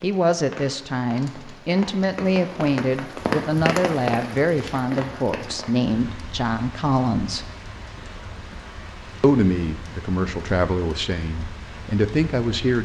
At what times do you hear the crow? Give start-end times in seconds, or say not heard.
not heard.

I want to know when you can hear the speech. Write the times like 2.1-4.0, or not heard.
0.0-7.5, 9.2-12.7.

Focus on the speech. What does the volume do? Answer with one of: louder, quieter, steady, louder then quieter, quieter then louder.
steady.